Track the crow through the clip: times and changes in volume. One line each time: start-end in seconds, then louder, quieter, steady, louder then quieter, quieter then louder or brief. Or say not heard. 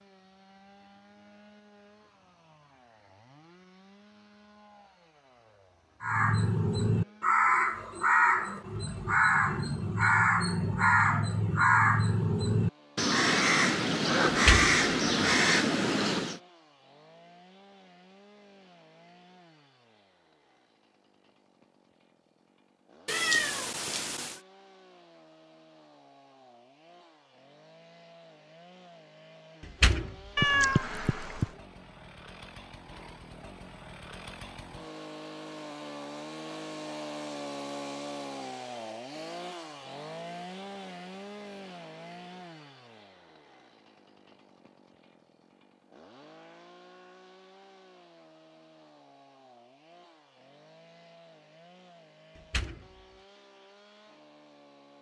6.0-16.4 steady.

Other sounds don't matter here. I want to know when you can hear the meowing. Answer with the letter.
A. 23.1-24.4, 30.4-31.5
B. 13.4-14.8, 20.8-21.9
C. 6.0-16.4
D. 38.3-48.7
A.